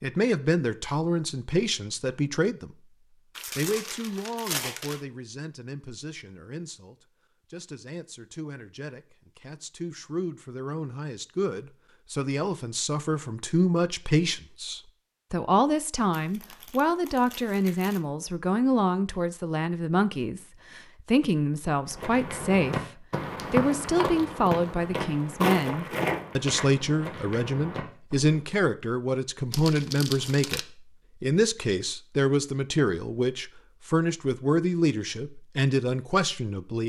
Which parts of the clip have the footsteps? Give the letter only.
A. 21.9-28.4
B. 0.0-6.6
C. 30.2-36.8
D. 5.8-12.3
A.